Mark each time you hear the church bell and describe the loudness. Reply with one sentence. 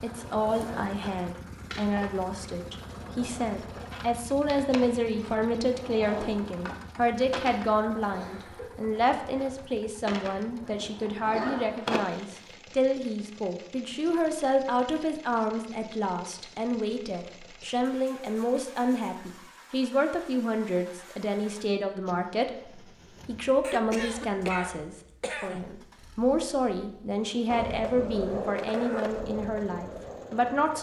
The church bell can't be heard in this clip.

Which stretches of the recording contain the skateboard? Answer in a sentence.
The skateboard can be heard from 0.0 to 12.6 s and from 27.4 to 30.7 s.